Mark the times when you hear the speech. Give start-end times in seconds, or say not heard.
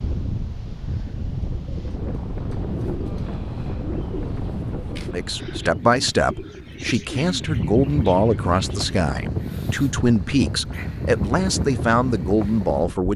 5.1-13.1.